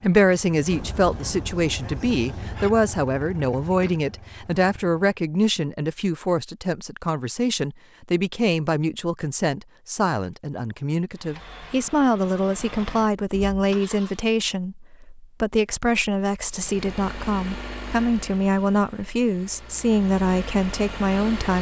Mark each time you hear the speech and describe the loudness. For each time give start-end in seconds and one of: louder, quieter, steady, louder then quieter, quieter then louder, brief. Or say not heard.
0.0-21.5 steady.